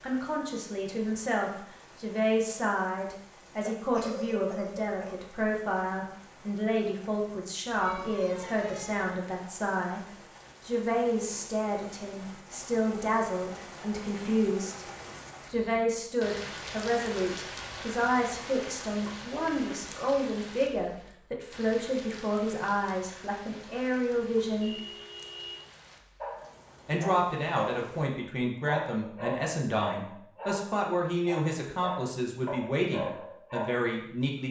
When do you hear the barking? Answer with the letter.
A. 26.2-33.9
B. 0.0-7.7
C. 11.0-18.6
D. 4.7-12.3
A.